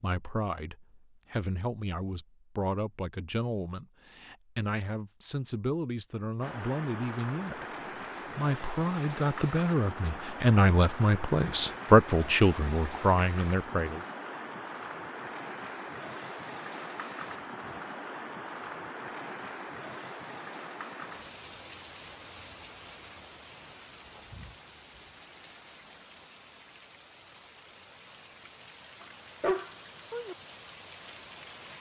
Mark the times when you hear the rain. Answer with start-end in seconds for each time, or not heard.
6.4-31.7.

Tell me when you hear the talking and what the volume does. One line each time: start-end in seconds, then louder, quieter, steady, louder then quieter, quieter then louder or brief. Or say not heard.
0.0-14.1 louder.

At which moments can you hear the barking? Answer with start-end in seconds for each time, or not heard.
29.0-30.4.